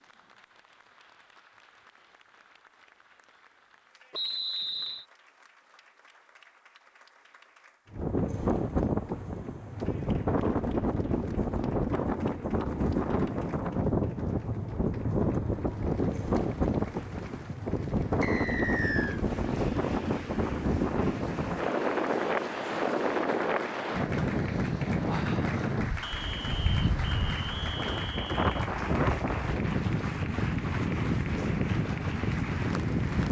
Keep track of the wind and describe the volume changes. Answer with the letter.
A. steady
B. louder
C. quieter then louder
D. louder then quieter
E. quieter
A.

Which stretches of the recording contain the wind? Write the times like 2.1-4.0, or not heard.
7.9-33.2.